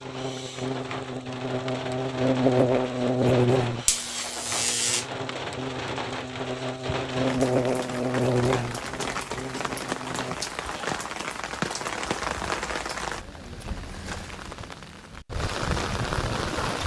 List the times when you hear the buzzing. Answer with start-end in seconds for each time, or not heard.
0.0-10.3.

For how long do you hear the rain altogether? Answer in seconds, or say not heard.
17 s.